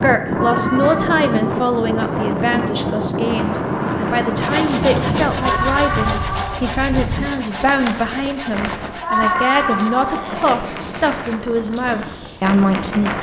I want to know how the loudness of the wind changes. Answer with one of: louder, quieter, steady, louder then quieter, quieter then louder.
quieter.